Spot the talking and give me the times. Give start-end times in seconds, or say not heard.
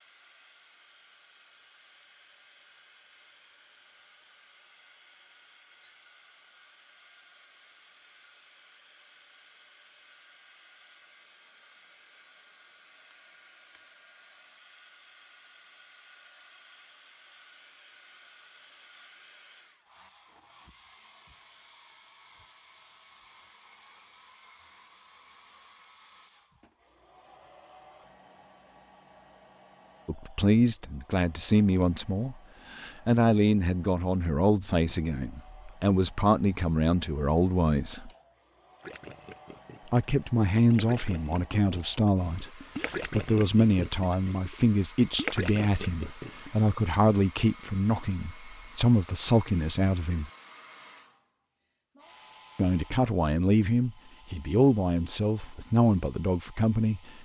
30.1-38.1, 39.9-50.3, 52.5-57.2.